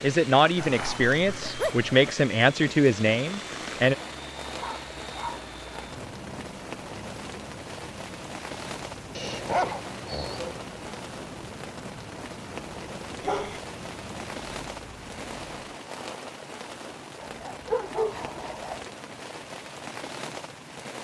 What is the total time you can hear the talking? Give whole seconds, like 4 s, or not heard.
4 s.